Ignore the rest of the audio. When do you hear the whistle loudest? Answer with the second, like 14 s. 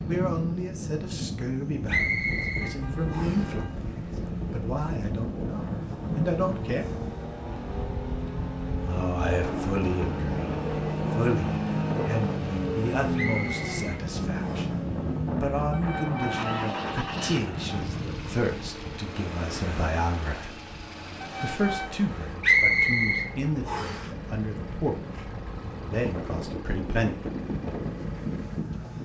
23 s.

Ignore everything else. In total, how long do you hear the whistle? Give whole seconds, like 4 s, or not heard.
5 s.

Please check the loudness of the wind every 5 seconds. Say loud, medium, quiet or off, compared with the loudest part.
loud, loud, loud, loud, medium, loud.